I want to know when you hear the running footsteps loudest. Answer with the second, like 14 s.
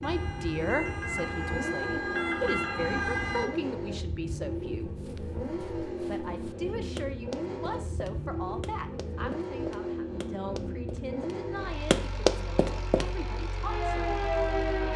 12 s.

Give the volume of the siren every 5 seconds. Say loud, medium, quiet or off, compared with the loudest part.
loud, off, loud.